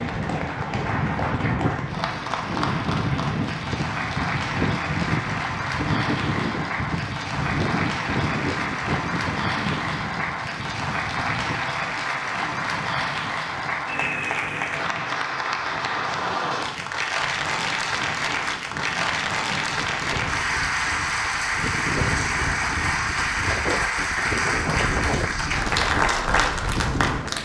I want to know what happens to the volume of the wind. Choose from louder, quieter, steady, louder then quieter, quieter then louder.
quieter then louder.